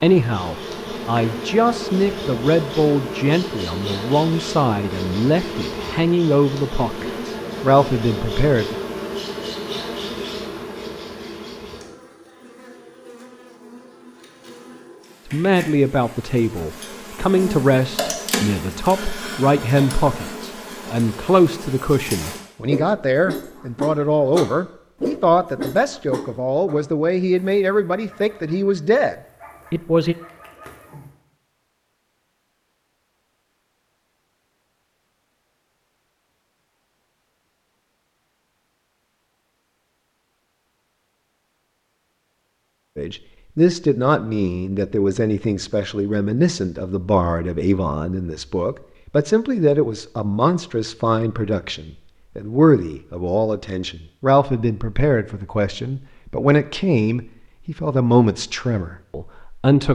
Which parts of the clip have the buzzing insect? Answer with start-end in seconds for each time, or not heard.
0.0-22.4.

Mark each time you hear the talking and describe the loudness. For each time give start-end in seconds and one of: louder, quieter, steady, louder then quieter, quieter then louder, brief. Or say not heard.
0.0-8.8 steady
15.2-30.1 steady
43.0-59.9 steady.